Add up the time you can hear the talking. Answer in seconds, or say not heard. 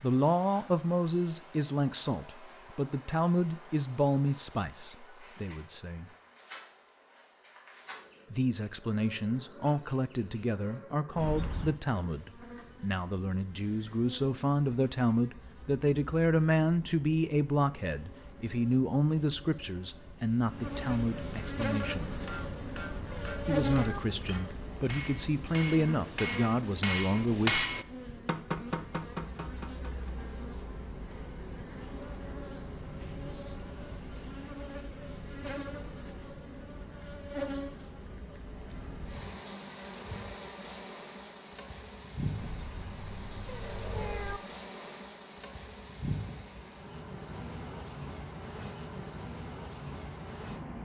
24 s.